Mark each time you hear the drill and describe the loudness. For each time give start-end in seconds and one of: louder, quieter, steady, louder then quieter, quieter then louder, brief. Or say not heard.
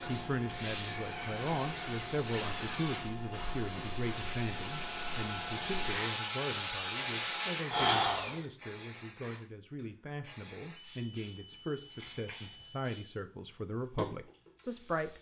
0.0-8.4 louder.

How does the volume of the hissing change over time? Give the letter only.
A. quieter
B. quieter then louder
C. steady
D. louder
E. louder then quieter
A.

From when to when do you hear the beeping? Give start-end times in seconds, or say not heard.
10.8-13.1.